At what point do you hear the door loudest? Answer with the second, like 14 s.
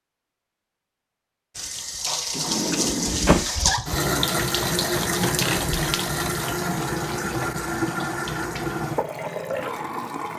3 s.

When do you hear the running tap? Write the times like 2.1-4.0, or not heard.
1.6-10.3.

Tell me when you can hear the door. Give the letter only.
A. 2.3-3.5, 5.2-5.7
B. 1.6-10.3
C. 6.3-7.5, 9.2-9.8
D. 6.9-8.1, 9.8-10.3
A.